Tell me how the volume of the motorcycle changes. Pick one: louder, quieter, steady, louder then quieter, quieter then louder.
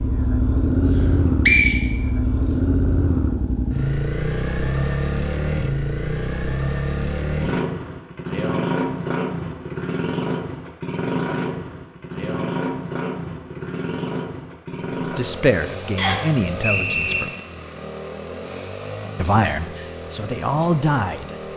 quieter.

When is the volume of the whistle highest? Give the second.
2 s.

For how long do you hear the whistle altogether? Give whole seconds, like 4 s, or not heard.
3 s.